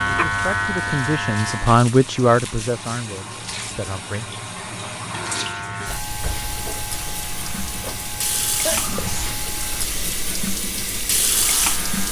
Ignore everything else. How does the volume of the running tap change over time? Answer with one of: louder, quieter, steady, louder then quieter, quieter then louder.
louder.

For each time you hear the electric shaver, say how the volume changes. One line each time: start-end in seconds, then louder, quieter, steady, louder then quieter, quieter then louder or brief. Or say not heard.
0.0-1.8 brief
5.0-12.0 quieter.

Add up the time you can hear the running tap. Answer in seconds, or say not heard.
12 s.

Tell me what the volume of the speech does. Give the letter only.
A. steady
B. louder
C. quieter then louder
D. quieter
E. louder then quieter
E.